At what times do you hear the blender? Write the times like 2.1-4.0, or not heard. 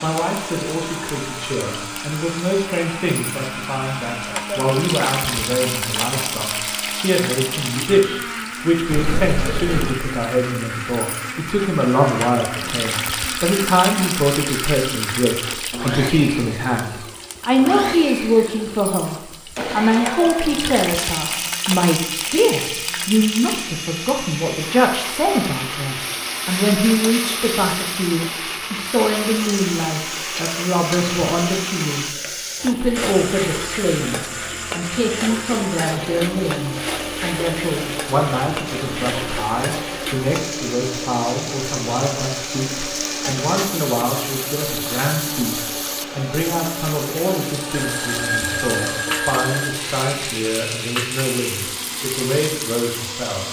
0.0-53.4.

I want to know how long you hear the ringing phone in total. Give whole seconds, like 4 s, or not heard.
3 s.